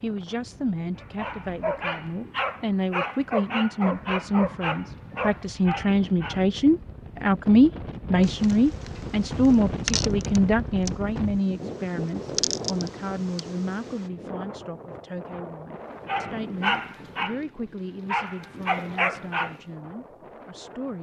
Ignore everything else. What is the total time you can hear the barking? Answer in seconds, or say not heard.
9 s.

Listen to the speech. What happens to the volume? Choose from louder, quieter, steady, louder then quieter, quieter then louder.
louder then quieter.